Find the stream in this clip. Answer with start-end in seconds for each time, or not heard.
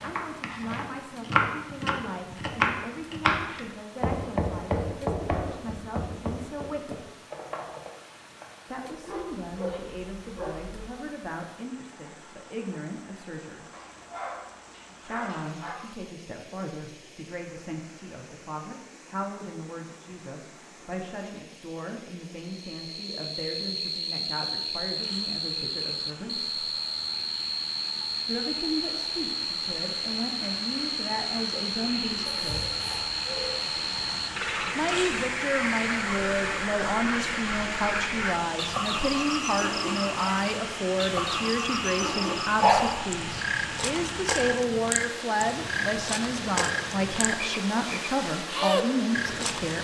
0.0-49.7.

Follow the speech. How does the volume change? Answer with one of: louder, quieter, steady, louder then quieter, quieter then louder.
louder.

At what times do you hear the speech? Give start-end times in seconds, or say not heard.
0.0-7.0, 8.7-13.7, 15.0-26.6, 28.2-32.6, 34.8-49.7.